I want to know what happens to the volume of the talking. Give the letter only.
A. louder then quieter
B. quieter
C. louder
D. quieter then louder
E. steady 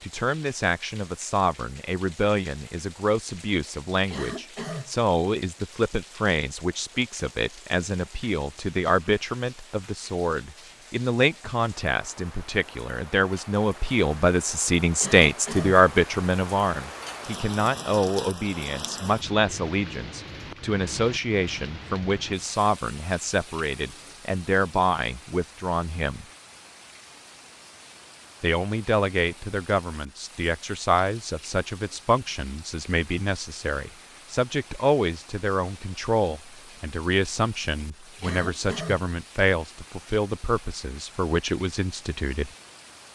E.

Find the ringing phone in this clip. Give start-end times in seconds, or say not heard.
not heard.